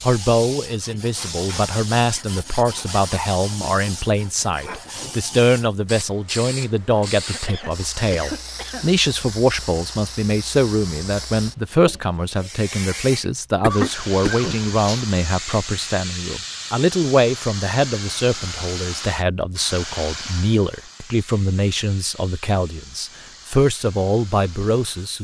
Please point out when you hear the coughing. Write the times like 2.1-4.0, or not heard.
7.2-8.9, 13.6-15.1.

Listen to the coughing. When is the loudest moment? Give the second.
14 s.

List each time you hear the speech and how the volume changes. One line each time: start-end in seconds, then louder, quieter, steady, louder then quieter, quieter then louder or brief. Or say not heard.
0.0-25.1 steady.